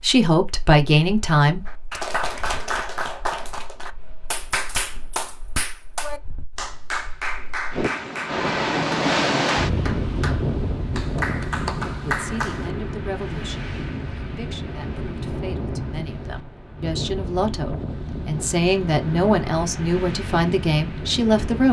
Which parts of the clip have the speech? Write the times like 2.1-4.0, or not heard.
0.0-2.0, 12.1-21.6.